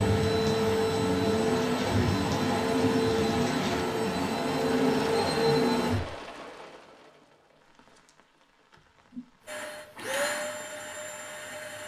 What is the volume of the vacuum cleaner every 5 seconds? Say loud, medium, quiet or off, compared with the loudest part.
loud, loud, medium.